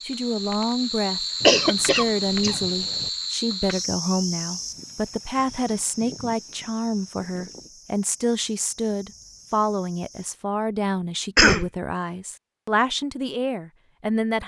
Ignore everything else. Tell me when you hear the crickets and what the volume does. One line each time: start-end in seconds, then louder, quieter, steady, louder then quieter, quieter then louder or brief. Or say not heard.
0.0-10.3 quieter.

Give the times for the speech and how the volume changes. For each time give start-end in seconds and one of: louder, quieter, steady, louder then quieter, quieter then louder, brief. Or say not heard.
0.1-14.4 steady.